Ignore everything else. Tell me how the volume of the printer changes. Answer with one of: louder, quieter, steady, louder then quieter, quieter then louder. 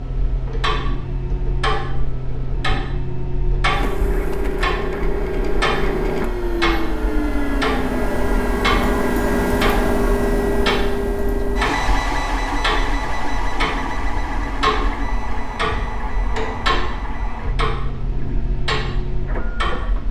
louder then quieter.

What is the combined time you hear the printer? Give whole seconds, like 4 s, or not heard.
20 s.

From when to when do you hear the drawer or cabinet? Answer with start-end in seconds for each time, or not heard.
not heard.